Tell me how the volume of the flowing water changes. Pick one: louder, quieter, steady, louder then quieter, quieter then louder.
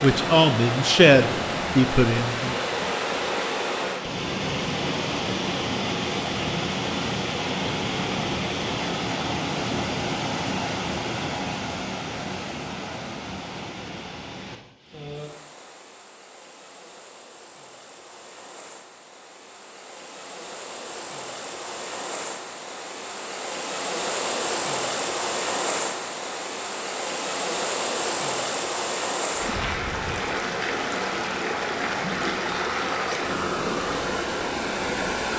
quieter then louder.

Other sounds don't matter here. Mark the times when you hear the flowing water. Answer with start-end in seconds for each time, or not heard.
0.0-35.3.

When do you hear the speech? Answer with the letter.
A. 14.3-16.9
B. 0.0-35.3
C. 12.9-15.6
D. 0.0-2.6
D.